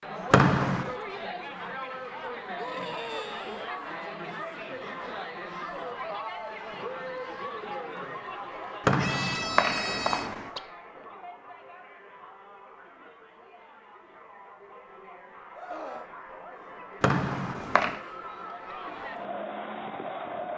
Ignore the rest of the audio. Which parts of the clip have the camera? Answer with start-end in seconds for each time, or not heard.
not heard.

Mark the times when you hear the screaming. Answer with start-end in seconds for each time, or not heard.
2.5-3.7, 8.9-10.3, 15.6-16.8.